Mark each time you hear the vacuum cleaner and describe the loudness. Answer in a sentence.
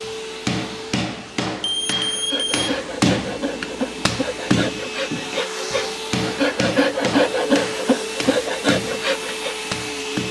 The vacuum cleaner can be heard from 0.0 to 10.2 s, getting louder.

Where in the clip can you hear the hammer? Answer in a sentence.
The hammer can be heard from 0.0 to 10.2 s.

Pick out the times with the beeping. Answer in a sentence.
The beeping can be heard from 1.6 to 2.8 s.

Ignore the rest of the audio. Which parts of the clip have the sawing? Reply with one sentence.
The sawing can be heard from 2.1 to 9.6 s.